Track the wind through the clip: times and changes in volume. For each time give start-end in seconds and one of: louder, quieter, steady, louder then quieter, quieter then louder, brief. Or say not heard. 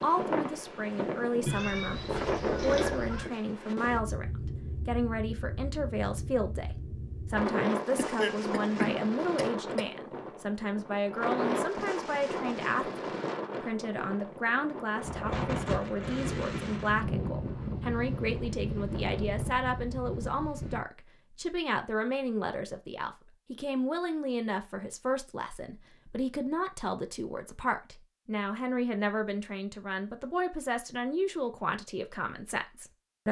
0.0-20.9 steady.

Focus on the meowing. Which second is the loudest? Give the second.
2 s.